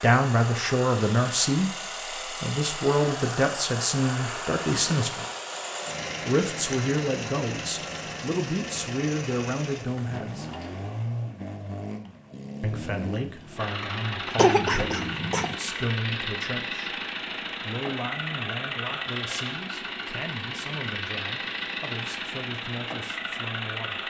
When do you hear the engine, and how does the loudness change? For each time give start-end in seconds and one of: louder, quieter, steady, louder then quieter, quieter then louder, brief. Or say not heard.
0.0-24.0 steady.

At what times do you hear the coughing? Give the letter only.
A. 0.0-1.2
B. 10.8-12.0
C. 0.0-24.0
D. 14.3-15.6
D.